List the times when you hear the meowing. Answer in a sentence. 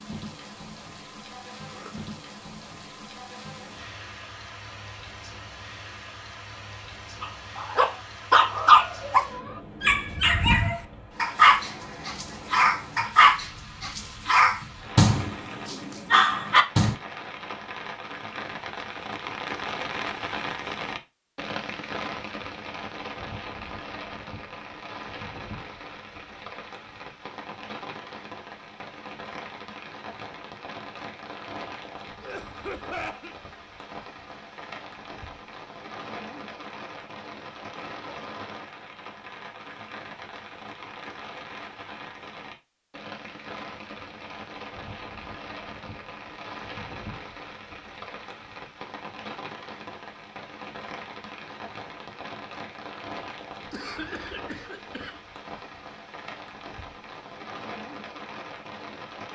The meowing can't be heard in this clip.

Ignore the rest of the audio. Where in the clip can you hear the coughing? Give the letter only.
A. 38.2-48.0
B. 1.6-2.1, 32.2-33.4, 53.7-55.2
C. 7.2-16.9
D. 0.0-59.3
B.